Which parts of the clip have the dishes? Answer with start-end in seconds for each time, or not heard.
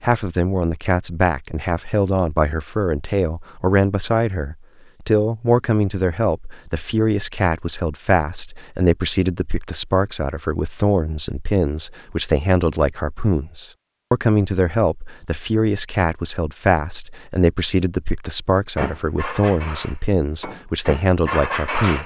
18.8-22.0.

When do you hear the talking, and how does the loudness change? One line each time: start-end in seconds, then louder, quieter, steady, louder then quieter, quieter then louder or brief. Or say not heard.
0.0-22.0 steady.